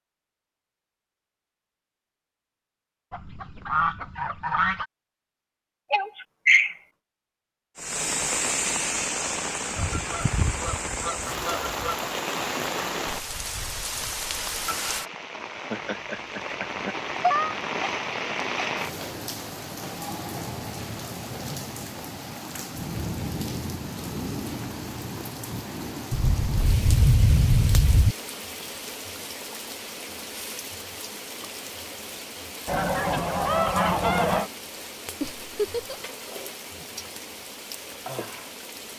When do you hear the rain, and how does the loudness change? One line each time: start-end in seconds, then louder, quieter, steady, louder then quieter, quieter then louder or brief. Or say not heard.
7.8-38.9 quieter.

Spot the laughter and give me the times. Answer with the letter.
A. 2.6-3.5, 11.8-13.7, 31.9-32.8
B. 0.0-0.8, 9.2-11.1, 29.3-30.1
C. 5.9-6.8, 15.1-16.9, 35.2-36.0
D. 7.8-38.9
C.